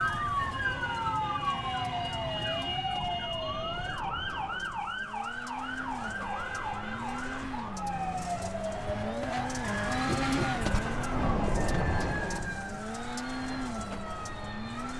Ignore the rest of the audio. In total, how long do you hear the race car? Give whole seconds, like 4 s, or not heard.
15 s.